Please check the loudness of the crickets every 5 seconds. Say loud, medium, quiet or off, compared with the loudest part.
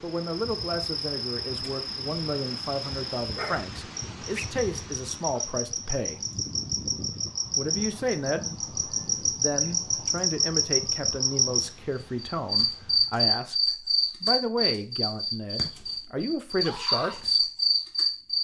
medium, medium, loud, loud.